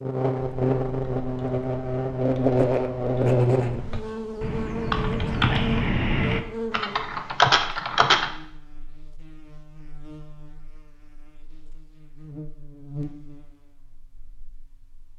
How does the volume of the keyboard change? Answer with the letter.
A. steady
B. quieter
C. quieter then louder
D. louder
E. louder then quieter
D.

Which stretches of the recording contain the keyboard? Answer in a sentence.
You can hear the keyboard from 0.3 to 8.3 s.